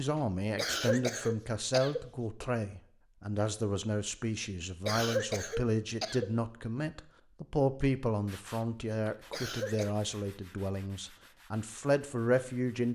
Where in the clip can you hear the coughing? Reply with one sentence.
You can hear the coughing from 0.6 to 2.5 s, from 4.8 to 6.3 s and from 9.3 to 9.9 s.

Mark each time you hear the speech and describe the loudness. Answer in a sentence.
The speech can be heard from 0.0 to 12.9 s, at a steady volume.